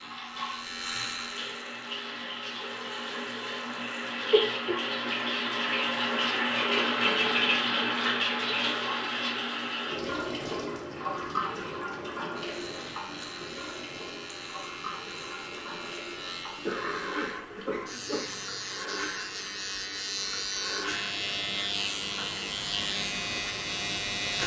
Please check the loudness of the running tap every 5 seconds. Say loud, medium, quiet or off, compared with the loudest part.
medium, loud, medium, quiet, quiet.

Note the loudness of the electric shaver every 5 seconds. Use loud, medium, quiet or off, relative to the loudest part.
medium, off, medium, medium, loud.